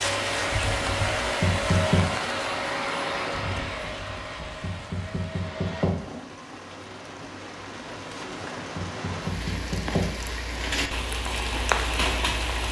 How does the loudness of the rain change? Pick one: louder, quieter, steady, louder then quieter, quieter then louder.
quieter then louder.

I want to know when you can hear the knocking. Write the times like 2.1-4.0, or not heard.
1.4-2.0, 4.6-6.0, 8.8-10.1.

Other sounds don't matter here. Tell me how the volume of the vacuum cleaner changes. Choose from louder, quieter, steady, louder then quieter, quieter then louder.
quieter.